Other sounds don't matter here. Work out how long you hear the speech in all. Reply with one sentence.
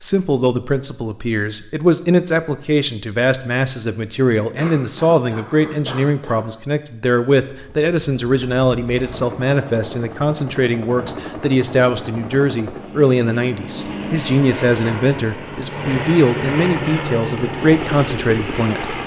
The speech can be heard for 19 seconds in total.